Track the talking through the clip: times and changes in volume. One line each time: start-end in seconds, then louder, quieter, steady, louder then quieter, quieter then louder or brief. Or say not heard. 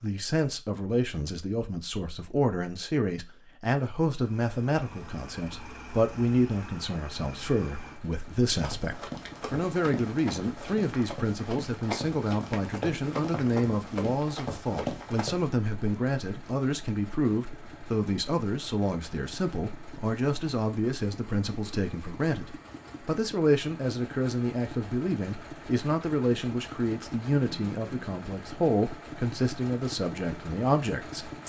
0.0-31.4 steady.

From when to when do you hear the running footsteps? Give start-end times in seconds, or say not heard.
8.6-15.4.